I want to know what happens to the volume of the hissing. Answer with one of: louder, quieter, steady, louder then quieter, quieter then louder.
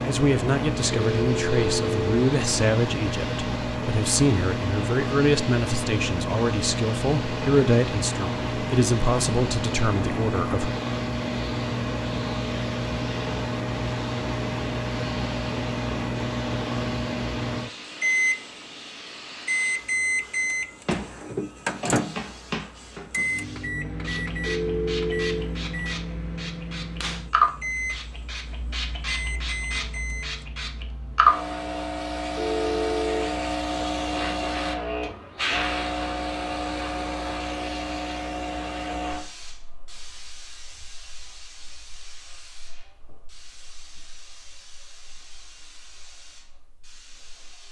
louder then quieter.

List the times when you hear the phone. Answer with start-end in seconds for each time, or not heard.
0.9-2.1, 24.4-25.5, 32.4-33.3.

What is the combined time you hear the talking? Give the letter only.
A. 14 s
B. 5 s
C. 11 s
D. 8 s
C.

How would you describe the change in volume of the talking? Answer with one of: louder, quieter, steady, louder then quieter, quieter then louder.
steady.